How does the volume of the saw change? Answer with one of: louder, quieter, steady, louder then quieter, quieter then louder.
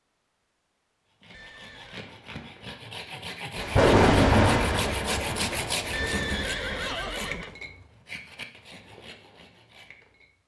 louder then quieter.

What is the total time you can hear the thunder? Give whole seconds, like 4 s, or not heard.
3 s.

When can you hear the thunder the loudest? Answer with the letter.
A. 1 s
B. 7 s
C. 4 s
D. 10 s
C.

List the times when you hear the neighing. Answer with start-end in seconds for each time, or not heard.
1.3-2.1, 5.9-7.5.